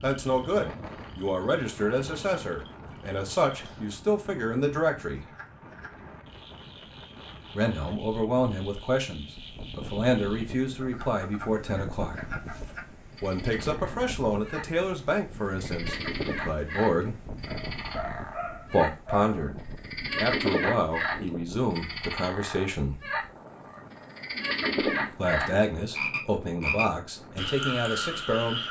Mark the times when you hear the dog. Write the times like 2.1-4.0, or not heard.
17.4-19.4.